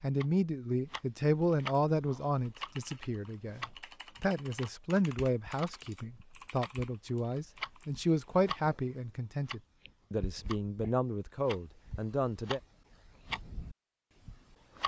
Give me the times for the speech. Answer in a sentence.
You can hear the speech from 0.0 to 12.6 s.